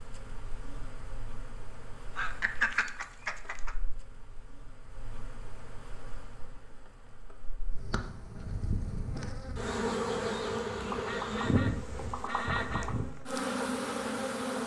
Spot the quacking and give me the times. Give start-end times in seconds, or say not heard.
2.1-3.8, 10.9-12.9.